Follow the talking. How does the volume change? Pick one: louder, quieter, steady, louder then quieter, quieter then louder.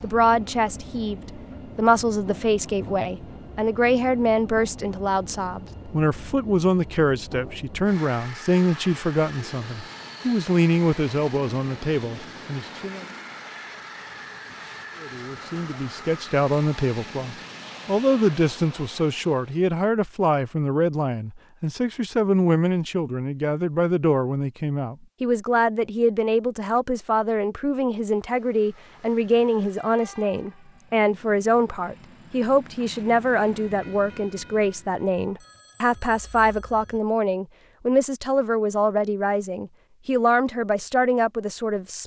steady.